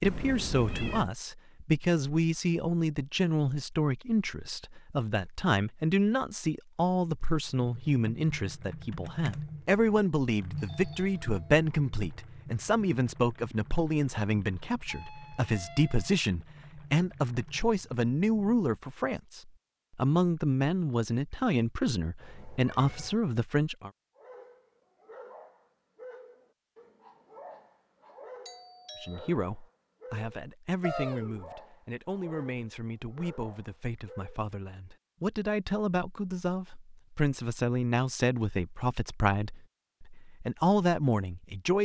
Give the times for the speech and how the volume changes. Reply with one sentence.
You can hear the speech from 0.0 to 23.9 s, at a steady volume; and from 29.0 to 41.8 s, getting louder.